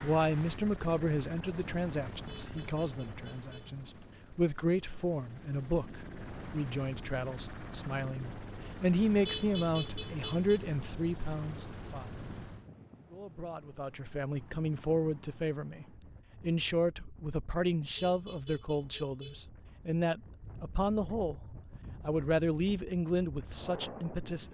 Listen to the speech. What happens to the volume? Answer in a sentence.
The volume of the speech stays about the same.